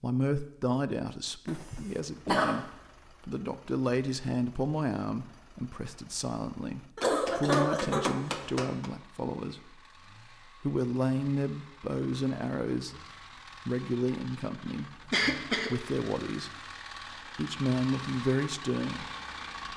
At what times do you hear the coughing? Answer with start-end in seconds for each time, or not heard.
1.4-2.6, 7.0-8.9, 15.1-15.7.